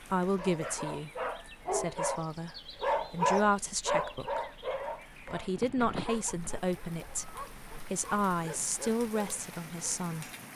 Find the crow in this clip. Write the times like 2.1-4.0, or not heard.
not heard.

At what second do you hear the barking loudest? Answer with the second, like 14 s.
3 s.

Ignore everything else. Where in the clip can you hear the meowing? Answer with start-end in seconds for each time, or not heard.
not heard.